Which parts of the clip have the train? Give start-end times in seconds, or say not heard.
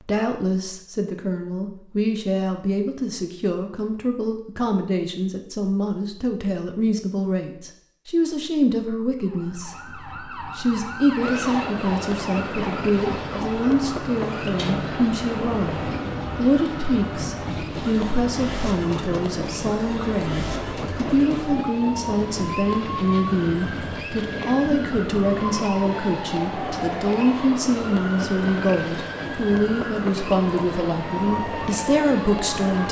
11.2-32.8.